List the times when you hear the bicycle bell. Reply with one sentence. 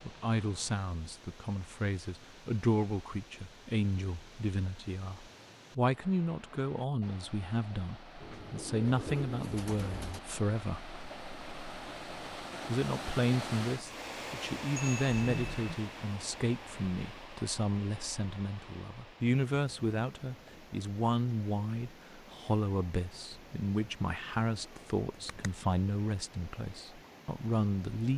The bicycle bell can be heard from 14.8 to 15.8 s.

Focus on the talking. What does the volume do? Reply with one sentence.
The loudness of the talking stays about the same.